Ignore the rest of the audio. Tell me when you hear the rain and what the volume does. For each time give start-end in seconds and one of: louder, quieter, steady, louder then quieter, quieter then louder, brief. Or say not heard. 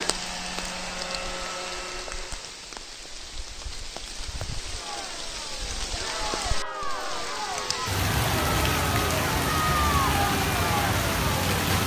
0.0-11.8 louder.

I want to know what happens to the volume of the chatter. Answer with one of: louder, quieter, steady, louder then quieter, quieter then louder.
louder.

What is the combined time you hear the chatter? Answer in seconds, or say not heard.
7 s.